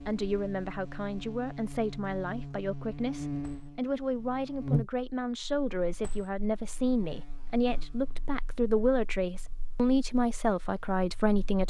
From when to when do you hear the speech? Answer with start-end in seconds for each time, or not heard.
0.1-11.6.